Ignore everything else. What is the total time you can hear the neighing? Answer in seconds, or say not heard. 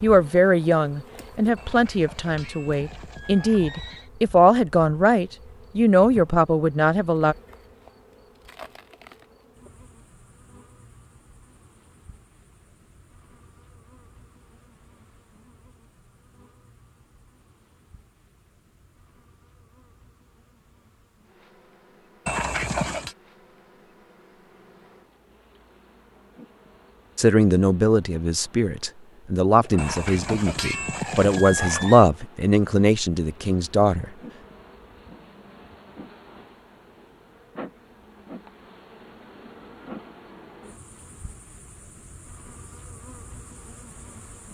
6 s.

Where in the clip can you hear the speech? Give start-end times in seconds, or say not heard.
0.0-7.3, 27.1-34.0.